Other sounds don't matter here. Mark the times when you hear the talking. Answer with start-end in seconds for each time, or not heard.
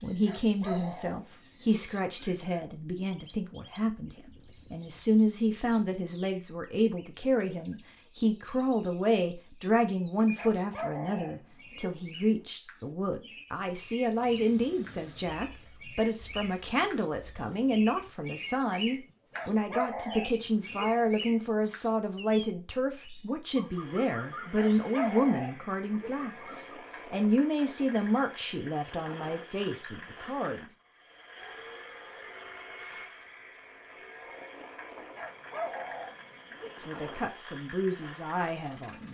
0.0-30.8, 36.9-39.0.